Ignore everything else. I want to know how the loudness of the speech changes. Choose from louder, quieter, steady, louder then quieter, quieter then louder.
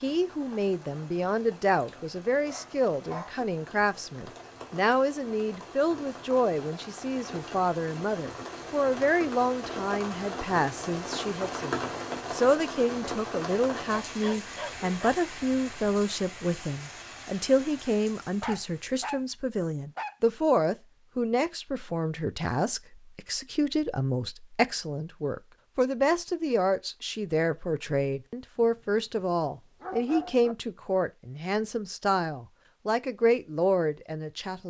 steady.